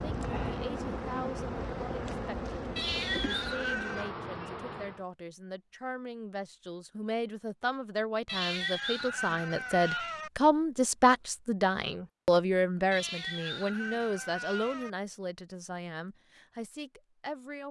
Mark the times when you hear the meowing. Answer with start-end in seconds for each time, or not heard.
2.8-4.1, 8.2-10.3, 12.9-14.9.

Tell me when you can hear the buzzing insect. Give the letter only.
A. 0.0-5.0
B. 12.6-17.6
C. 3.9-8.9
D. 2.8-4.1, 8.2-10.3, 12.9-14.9
A.